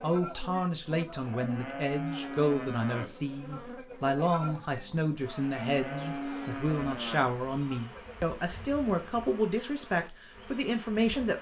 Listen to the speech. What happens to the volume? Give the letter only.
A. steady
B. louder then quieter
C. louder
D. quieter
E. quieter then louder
A.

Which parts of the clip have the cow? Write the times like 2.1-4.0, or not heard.
0.0-9.5.